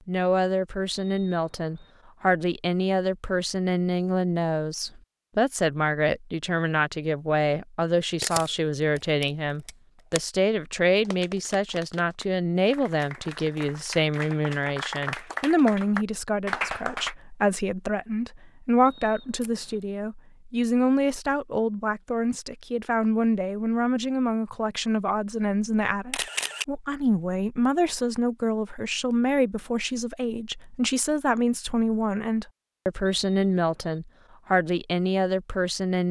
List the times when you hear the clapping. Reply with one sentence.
The clapping can be heard from 11.1 to 17.1 s.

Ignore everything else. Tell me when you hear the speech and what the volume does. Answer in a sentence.
The speech can be heard from 0.1 to 36.0 s, at a steady volume.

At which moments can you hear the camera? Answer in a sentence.
The camera can be heard from 8.2 to 10.2 s, from 19.4 to 19.9 s and from 26.1 to 26.6 s.